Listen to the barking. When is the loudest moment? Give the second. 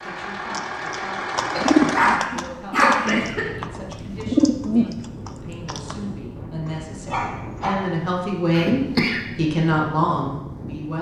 3 s.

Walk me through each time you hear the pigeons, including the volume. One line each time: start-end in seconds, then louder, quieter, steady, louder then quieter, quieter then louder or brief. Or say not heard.
0.5-6.0 quieter then louder.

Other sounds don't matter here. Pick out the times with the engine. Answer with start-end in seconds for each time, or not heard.
0.0-2.2.